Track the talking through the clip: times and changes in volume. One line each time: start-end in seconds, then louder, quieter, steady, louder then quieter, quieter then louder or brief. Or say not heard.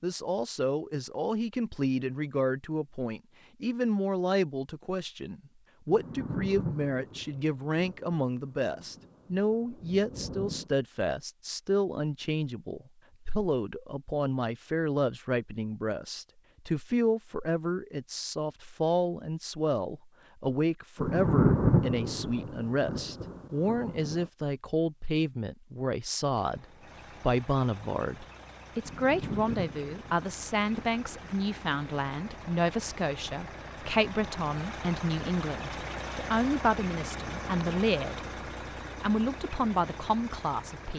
0.0-38.2 steady
39.0-40.9 brief.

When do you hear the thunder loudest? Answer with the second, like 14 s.
22 s.